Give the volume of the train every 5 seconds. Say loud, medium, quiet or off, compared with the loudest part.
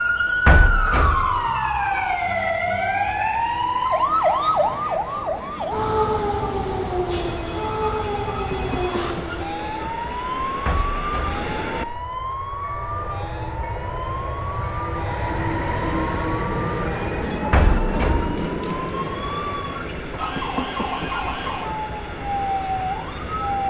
quiet, medium, medium, loud, medium.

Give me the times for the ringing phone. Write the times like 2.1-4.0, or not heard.
7.1-9.2.